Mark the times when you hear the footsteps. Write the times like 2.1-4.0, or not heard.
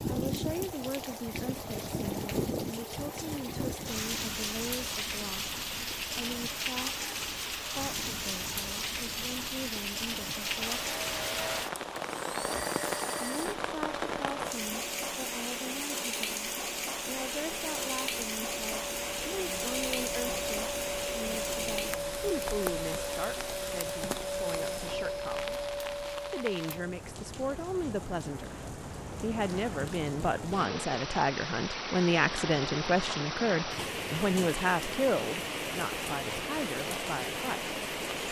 not heard.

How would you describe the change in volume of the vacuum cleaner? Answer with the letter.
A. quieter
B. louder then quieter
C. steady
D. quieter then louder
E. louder
D.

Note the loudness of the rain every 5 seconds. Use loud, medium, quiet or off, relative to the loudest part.
loud, loud, loud, loud, loud, medium, loud, loud.